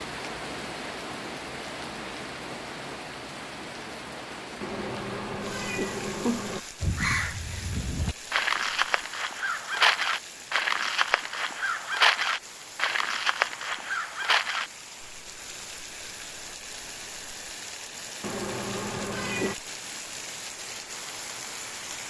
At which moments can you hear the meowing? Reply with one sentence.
You can hear the meowing from 4.6 to 6.6 s and from 18.2 to 19.6 s.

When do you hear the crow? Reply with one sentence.
You can hear the crow from 6.8 to 14.7 s.